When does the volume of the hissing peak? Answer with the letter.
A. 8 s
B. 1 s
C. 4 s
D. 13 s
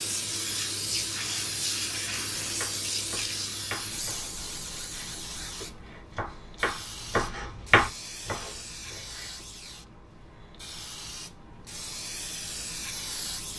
B.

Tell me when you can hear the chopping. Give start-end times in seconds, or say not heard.
2.4-9.6.